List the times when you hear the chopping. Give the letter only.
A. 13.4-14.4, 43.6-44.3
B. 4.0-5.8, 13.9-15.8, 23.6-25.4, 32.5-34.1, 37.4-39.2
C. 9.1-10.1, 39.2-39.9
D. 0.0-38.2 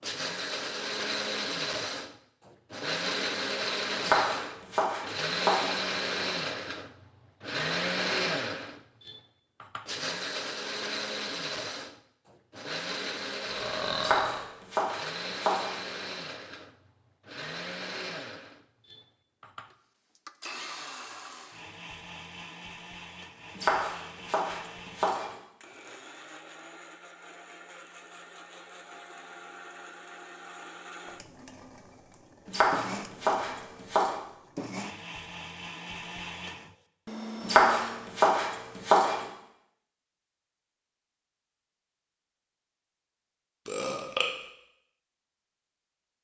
B.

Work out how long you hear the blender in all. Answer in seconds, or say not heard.
38 s.